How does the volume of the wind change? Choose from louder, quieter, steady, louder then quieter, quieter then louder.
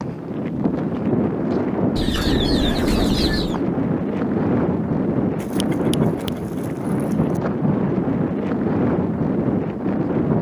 steady.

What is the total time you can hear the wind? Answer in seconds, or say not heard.
10 s.